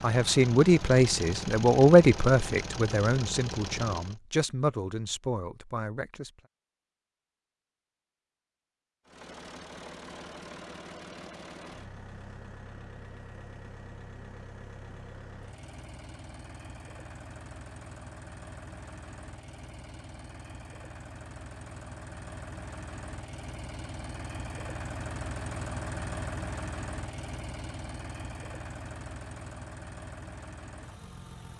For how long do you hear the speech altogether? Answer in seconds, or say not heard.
6 s.